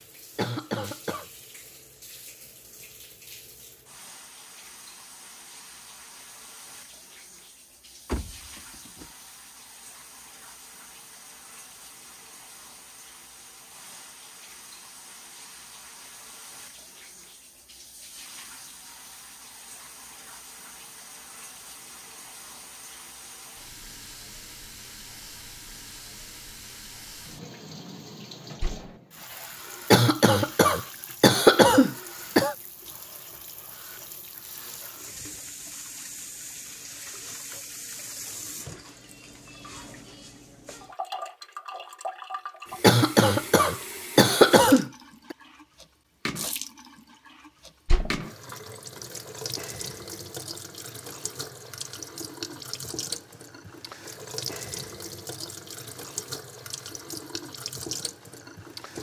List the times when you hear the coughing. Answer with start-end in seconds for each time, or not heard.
0.3-1.2, 29.9-32.5, 42.8-45.4.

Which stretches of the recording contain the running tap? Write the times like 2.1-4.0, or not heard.
0.0-58.9.